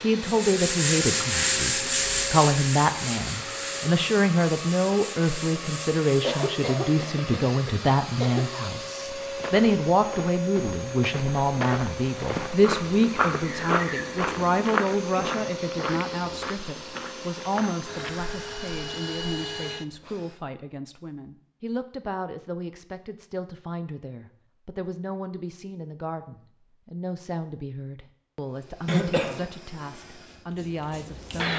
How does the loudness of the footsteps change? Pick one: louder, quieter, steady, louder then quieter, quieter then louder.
louder then quieter.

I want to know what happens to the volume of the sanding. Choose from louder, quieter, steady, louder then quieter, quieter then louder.
quieter.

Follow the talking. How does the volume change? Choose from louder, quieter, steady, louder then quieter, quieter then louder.
quieter.